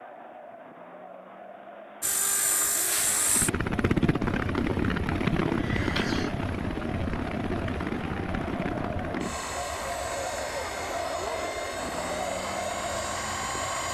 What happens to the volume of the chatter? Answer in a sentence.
The volume of the chatter goes up.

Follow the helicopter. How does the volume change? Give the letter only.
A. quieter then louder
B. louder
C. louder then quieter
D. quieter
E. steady
D.